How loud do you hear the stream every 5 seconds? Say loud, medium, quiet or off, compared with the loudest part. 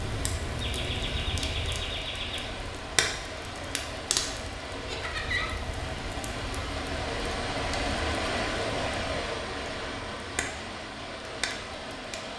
medium, loud, medium.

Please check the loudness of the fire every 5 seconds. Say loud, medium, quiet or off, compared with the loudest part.
loud, medium, medium.